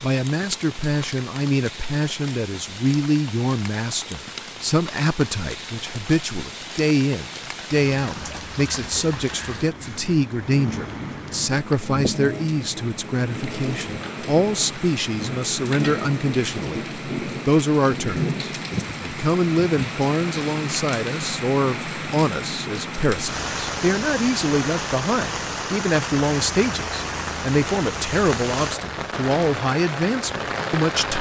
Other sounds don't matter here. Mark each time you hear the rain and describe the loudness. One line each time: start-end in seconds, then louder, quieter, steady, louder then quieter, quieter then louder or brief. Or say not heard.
0.0-31.1 louder.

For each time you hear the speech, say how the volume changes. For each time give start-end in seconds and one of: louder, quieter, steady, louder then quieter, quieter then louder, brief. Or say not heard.
0.0-31.1 steady.